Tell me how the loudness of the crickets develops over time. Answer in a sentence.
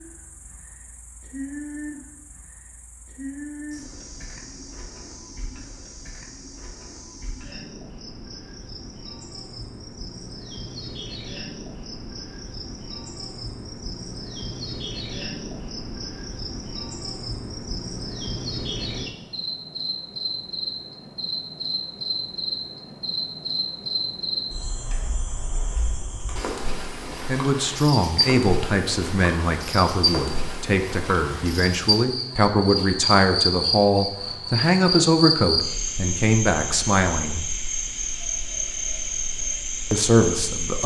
The volume of the crickets goes up.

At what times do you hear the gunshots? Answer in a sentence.
The gunshots can't be heard in this clip.